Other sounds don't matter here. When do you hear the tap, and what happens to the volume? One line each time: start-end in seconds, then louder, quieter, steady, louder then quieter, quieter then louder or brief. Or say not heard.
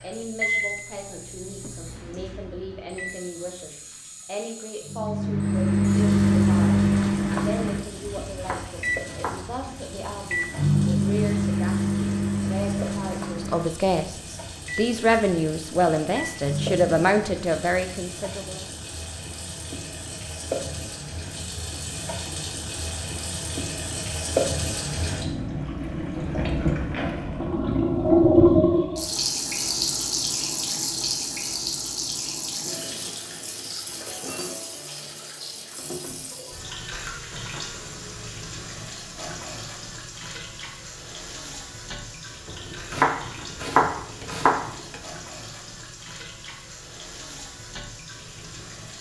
0.0-48.9 louder then quieter.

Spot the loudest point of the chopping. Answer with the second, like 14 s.
44 s.